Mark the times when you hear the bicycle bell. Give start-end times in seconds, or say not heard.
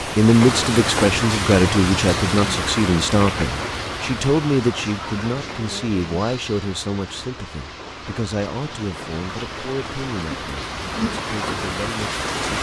not heard.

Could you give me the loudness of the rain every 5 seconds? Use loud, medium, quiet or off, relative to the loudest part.
loud, medium, loud.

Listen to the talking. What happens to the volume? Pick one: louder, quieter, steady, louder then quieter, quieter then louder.
quieter.